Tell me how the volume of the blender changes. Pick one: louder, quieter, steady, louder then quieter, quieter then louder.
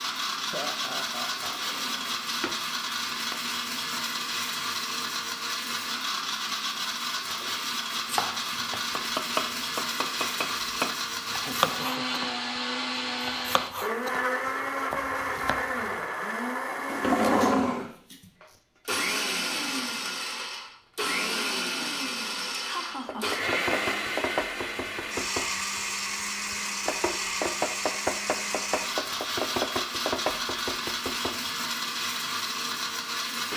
steady.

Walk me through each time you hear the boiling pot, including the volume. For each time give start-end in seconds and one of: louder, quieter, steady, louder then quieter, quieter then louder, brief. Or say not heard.
not heard.